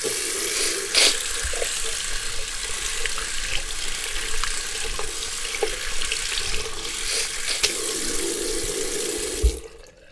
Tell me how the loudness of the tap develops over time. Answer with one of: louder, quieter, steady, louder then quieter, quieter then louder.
steady.